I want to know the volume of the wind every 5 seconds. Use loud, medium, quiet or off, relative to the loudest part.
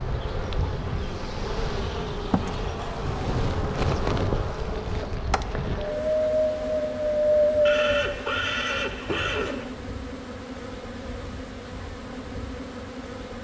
quiet, loud, off.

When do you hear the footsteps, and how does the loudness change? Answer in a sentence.
The footsteps can't be heard in this clip.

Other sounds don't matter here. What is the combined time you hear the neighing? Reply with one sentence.
You can hear the neighing for 2 seconds altogether.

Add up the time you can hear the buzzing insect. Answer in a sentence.
You can hear the buzzing insect for 13 seconds altogether.